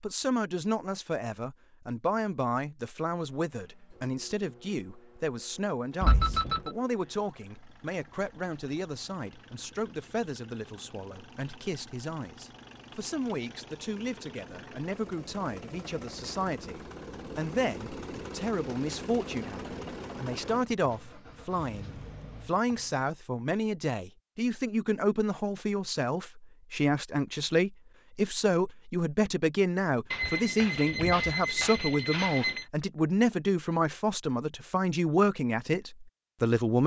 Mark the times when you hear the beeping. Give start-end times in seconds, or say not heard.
6.0-6.7, 30.1-32.6.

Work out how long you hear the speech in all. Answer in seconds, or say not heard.
37 s.